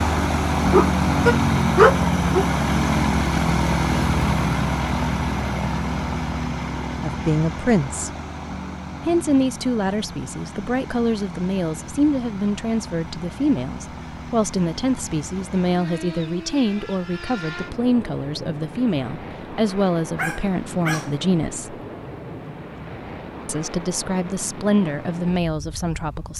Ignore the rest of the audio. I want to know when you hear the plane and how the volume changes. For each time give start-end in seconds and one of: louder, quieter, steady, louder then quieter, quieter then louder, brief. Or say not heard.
0.0-26.3 quieter.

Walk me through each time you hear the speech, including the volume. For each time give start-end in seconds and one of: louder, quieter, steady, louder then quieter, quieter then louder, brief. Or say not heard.
7.0-8.1 brief
9.1-21.8 steady
23.4-26.3 brief.